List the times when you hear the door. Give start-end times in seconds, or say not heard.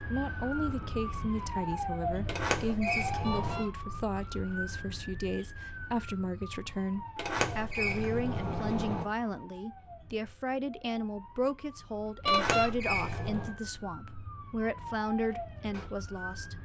2.2-3.6, 7.2-9.1, 12.2-13.6.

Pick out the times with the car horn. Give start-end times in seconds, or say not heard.
3.2-3.7, 12.2-12.7.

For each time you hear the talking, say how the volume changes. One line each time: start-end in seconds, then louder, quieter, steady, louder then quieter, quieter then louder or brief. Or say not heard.
0.0-16.6 steady.